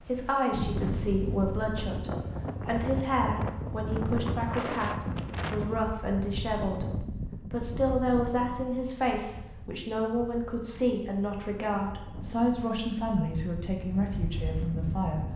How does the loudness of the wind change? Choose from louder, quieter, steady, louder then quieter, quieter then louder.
quieter then louder.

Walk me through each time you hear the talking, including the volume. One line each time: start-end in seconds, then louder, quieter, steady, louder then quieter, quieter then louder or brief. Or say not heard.
0.0-15.2 steady.